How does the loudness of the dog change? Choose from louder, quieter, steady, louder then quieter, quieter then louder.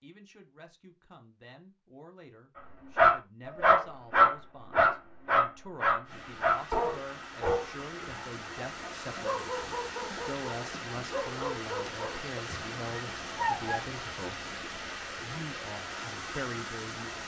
quieter.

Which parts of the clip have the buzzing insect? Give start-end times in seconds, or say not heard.
not heard.